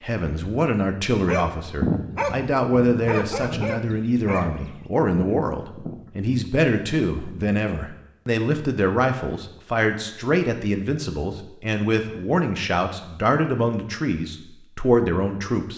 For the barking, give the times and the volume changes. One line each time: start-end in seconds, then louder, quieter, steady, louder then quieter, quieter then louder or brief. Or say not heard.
1.1-6.3 quieter.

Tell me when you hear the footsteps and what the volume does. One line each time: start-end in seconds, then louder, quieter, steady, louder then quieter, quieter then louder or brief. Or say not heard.
not heard.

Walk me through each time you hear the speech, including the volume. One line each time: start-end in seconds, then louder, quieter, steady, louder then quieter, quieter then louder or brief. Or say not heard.
0.0-15.7 steady.